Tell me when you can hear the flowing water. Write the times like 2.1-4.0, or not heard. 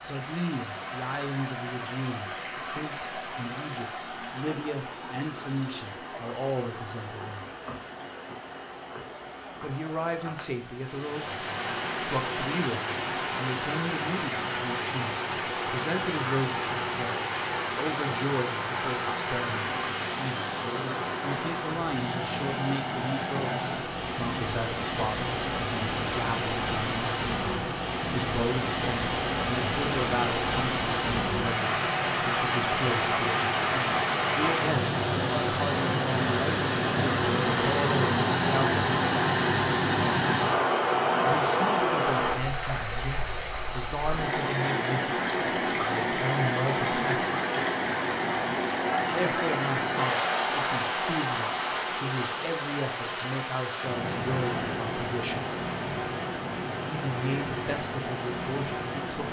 0.0-59.2.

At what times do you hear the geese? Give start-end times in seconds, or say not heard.
not heard.